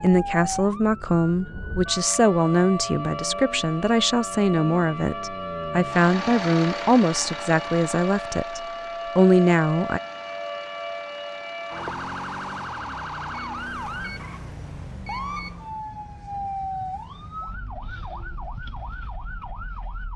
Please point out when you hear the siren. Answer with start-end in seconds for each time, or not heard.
0.0-20.1.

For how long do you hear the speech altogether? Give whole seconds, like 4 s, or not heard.
10 s.